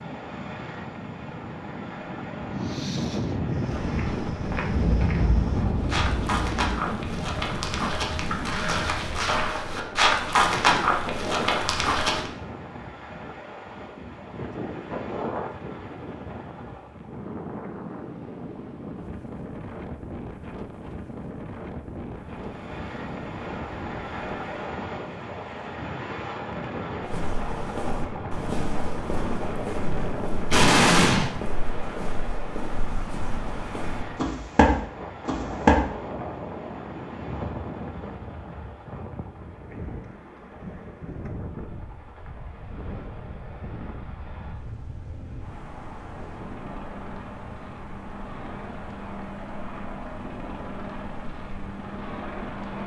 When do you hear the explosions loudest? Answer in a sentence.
The volume of the explosions peaks at 31 seconds.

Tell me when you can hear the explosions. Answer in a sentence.
The explosions can be heard from 4.8 to 6.6 s and from 30.5 to 31.3 s.